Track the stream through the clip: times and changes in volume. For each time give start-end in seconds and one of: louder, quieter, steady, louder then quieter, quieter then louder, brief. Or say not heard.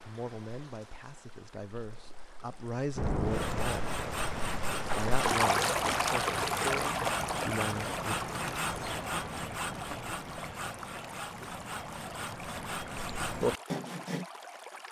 0.0-14.8 louder then quieter.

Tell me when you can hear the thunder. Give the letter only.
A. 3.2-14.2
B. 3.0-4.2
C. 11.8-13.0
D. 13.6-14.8
B.